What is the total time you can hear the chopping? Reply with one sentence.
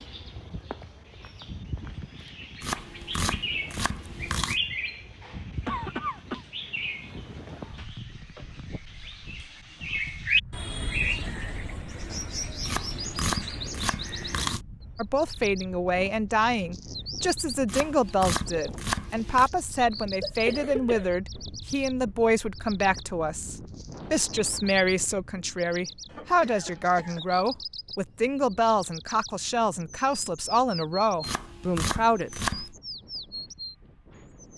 The chopping can be heard for 7 seconds in total.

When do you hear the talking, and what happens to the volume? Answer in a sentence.
You can hear the talking from 14.9 to 32.6 s, at a steady volume.